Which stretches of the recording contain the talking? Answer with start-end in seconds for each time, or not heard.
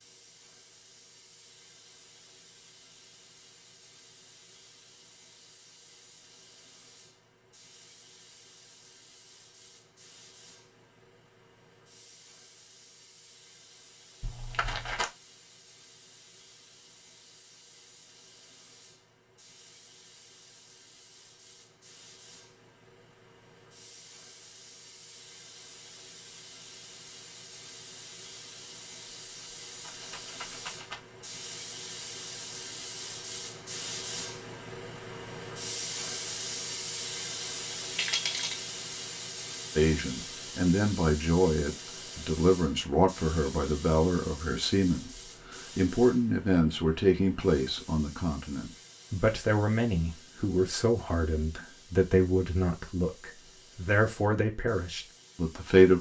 39.8-55.9.